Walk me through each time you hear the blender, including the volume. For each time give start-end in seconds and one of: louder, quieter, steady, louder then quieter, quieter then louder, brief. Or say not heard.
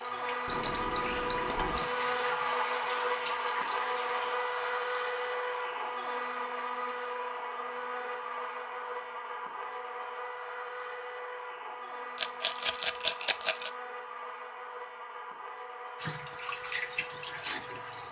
0.0-18.0 quieter.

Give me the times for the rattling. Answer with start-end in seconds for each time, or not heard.
12.2-13.7.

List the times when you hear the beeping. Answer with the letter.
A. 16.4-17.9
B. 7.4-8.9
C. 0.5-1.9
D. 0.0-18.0
C.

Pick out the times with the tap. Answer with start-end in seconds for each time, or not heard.
0.0-4.8, 16.0-18.0.